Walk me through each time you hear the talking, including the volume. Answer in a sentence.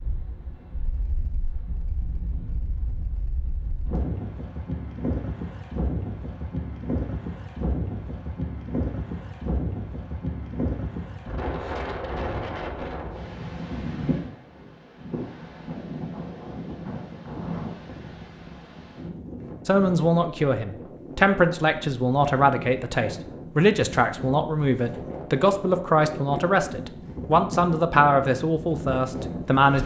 The talking can be heard from 19.6 to 29.8 s, at a steady volume.